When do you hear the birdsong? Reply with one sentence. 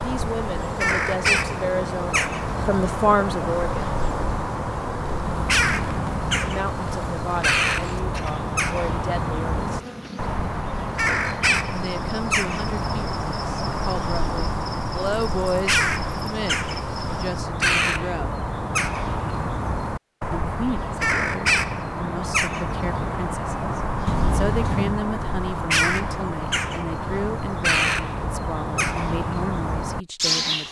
The birdsong can be heard from 0.0 to 30.6 s.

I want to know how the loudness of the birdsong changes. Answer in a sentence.
The volume of the birdsong stays about the same.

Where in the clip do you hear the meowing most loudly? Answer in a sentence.
The loudest moment of the meowing is at 25 seconds.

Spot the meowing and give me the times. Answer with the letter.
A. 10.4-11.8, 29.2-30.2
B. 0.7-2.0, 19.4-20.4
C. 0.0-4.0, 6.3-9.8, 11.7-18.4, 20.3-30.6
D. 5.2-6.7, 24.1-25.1
D.